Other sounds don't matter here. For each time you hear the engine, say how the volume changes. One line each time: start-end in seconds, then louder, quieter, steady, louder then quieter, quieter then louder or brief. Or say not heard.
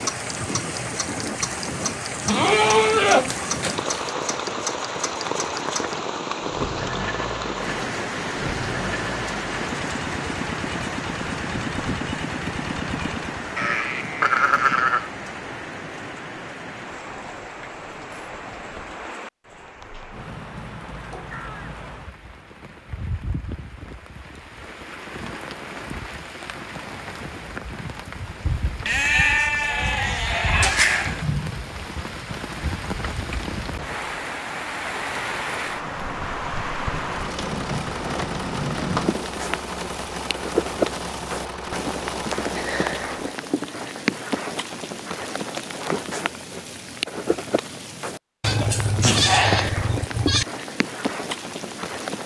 0.0-13.6 steady
37.1-43.2 steady.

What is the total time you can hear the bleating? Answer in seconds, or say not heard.
8 s.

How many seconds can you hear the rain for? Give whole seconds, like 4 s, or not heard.
52 s.